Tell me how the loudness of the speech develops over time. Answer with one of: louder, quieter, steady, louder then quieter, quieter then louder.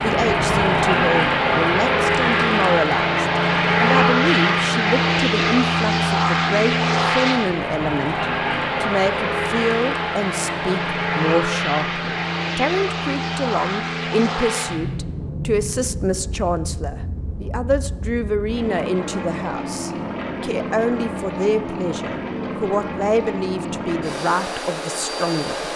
steady.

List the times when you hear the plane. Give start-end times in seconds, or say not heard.
0.0-25.7.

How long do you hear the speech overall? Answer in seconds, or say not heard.
26 s.